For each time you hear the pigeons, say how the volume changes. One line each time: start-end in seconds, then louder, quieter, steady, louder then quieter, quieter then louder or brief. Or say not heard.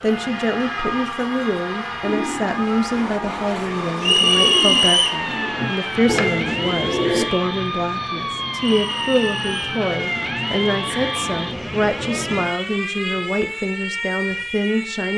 2.0-7.2 louder.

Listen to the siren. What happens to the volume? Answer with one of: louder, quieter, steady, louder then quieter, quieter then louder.
louder.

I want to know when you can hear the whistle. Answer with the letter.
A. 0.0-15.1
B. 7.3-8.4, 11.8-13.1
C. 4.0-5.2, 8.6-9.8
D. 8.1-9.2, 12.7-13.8
C.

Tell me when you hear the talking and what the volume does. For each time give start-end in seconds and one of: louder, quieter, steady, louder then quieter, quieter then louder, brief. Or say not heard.
0.0-15.1 steady.